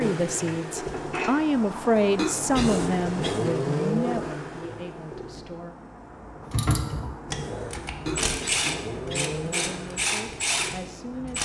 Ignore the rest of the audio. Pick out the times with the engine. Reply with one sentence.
The engine can be heard from 0.0 to 11.4 s.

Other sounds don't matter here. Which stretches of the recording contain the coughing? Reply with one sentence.
You can hear the coughing from 2.1 to 3.4 s and from 8.1 to 9.3 s.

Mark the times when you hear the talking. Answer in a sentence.
The talking can be heard from 0.0 to 5.7 s and from 8.9 to 11.4 s.